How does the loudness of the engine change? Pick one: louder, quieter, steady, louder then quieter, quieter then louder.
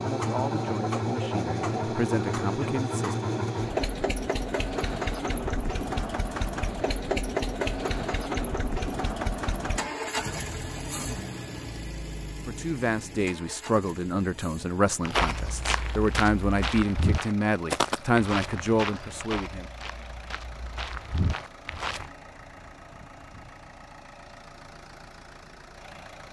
quieter.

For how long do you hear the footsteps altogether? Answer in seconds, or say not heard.
7 s.